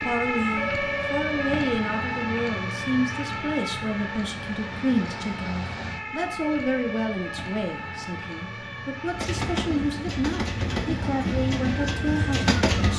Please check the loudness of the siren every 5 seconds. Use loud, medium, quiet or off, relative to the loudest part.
loud, medium, medium.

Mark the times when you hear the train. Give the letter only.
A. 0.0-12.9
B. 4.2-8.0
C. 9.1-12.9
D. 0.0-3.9
C.